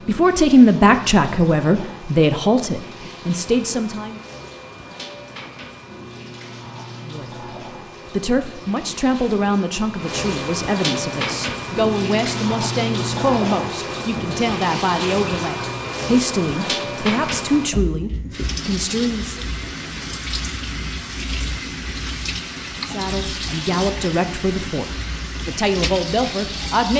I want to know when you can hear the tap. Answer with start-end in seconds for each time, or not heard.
0.0-26.9.